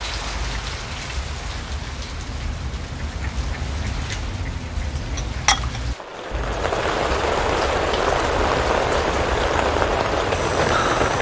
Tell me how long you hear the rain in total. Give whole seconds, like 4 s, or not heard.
11 s.